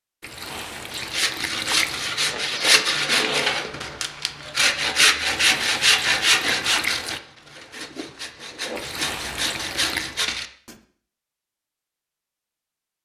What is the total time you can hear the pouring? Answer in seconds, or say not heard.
5 s.